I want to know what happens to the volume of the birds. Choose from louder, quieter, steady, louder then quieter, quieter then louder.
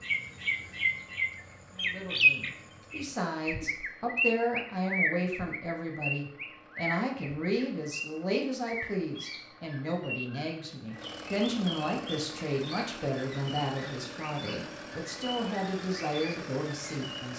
quieter.